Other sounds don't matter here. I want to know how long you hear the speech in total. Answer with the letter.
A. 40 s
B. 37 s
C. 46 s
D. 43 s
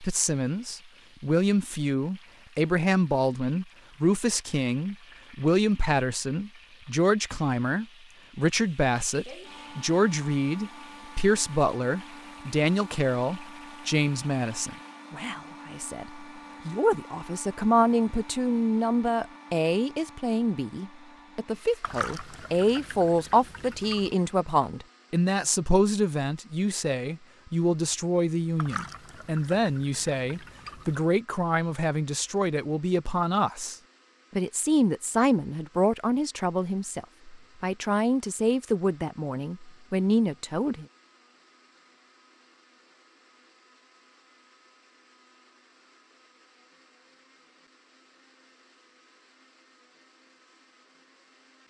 A.